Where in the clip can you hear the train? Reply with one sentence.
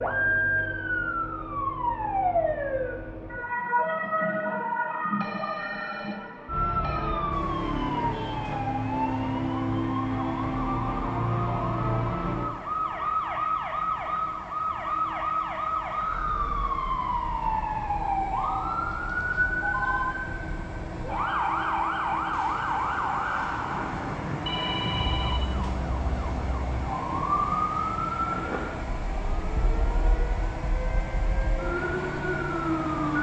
You can hear the train from 7.3 to 33.1 s.